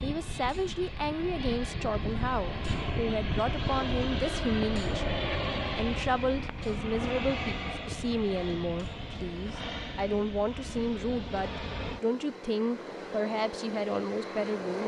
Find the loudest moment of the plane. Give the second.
5 s.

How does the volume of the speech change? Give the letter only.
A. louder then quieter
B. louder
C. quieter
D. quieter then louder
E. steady
E.